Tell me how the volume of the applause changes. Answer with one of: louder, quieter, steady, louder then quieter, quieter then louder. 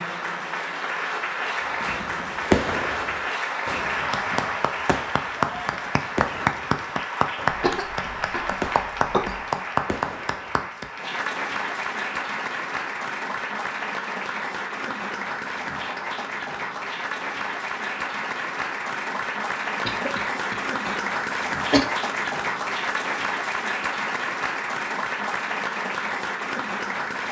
steady.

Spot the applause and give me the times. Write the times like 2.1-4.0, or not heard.
0.0-27.2.